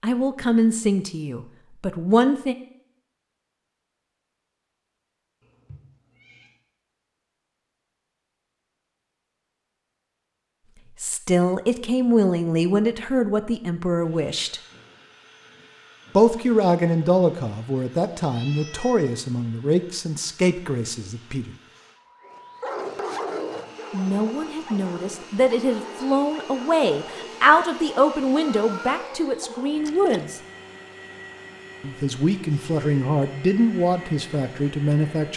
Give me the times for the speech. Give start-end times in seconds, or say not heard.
0.0-2.5, 11.0-14.6, 16.1-21.6, 23.9-30.4, 31.8-35.3.